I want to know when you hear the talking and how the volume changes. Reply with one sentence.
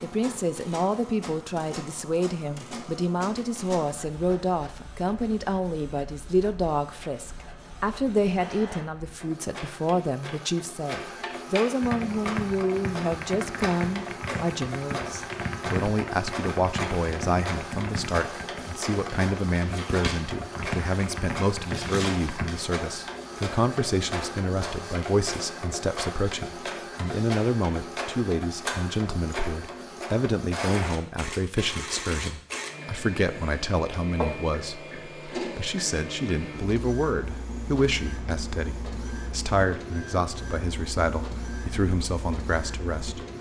The talking can be heard from 0.0 to 43.2 s, at a steady volume.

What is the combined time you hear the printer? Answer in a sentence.
The printer can be heard for 43 seconds in total.